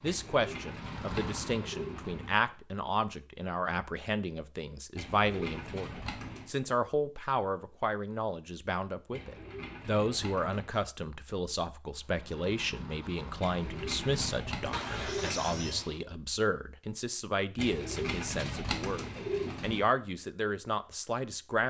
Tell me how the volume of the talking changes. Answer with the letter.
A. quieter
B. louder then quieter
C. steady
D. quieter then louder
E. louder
C.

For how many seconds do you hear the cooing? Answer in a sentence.
You can hear the cooing for 10 seconds altogether.